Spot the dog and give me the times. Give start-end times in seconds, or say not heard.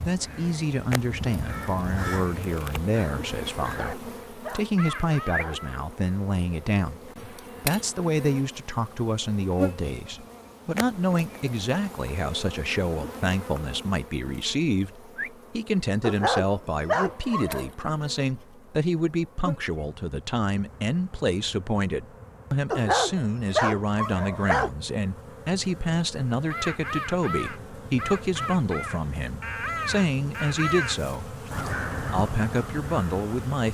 3.7-5.6, 16.0-17.6, 22.7-24.7.